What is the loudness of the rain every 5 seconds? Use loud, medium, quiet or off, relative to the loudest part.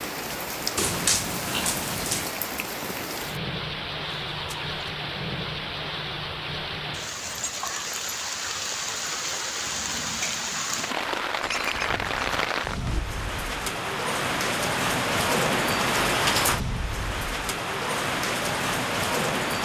medium, medium, loud, loud.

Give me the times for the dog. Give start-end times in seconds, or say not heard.
0.8-2.4.